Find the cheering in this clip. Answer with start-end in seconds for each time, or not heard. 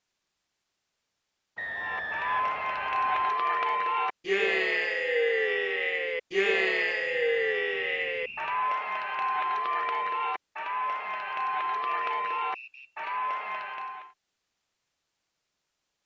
1.8-14.1.